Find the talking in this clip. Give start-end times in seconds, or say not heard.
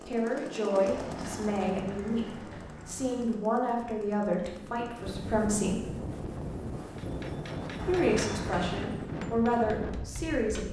0.1-5.9, 7.8-10.6.